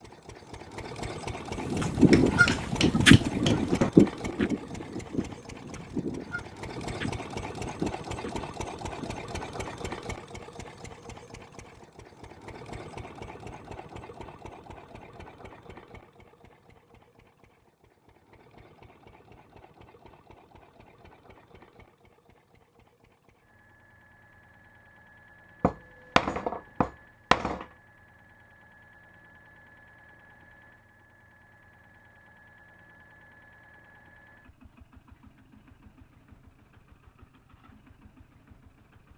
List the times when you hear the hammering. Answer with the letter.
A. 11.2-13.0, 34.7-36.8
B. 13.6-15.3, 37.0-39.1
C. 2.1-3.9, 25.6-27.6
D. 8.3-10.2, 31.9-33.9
C.